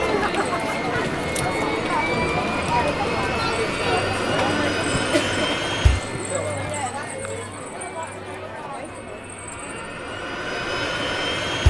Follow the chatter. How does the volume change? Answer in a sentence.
The loudness of the chatter goes down.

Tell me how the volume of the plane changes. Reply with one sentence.
The volume of the plane goes down, then up.